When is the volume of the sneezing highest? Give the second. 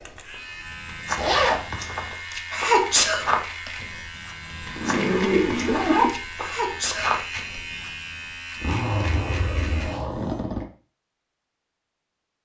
3 s.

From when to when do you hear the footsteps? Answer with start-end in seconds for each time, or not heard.
0.7-8.2.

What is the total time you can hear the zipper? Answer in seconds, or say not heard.
4 s.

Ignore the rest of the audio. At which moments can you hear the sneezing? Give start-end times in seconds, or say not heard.
2.5-3.7, 6.4-7.2.